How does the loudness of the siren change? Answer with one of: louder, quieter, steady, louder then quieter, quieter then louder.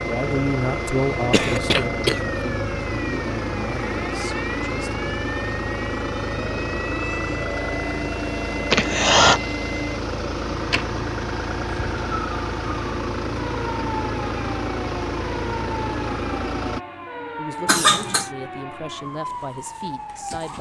steady.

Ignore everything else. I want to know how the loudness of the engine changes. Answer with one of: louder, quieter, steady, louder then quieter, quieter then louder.
steady.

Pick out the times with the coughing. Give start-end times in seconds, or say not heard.
1.3-2.2, 8.7-9.4, 17.6-18.3.